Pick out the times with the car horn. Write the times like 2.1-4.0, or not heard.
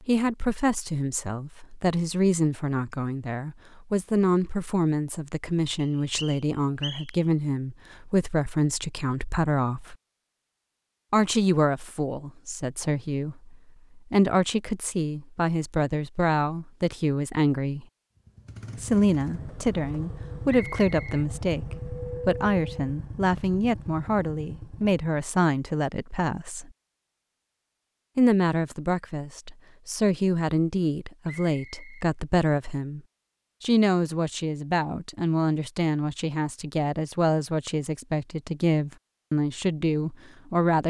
not heard.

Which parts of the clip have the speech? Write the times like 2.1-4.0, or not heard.
0.1-9.9, 11.1-17.9, 18.8-26.7, 28.1-33.0, 33.6-40.8.